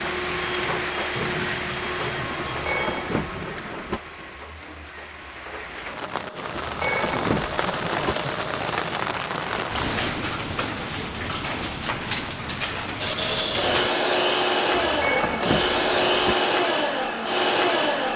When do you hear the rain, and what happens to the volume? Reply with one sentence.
You can hear the rain from 0.0 to 13.9 s, getting quieter then louder.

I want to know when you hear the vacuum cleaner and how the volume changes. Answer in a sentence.
The vacuum cleaner can be heard from 0.0 to 9.1 s, getting quieter then louder; and from 12.9 to 18.1 s, at a steady volume.